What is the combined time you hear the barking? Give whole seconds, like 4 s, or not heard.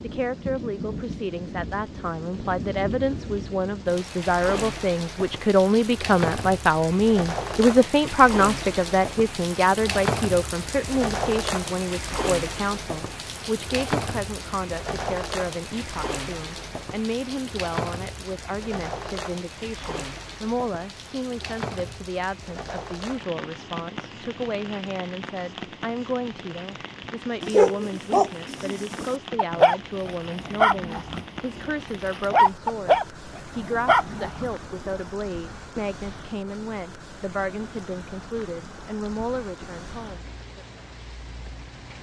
7 s.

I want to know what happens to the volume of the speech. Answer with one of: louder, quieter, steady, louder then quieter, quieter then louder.
quieter.